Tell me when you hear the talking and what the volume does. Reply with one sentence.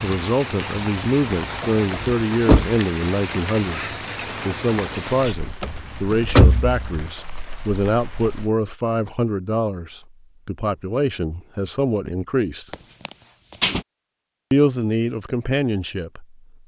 The talking can be heard from 0.0 to 12.7 s, at a steady volume; and briefly from 14.5 to 16.4 s.